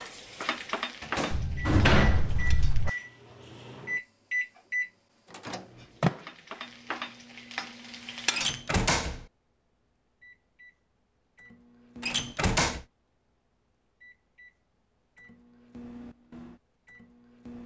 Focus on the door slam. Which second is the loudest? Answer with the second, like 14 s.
2 s.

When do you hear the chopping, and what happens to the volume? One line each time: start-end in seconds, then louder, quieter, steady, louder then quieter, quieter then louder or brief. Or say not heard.
not heard.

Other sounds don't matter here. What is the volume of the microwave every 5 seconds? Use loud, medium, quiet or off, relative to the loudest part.
loud, loud, quiet, quiet.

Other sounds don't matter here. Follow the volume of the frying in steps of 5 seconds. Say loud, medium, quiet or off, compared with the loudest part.
loud, loud, off, off.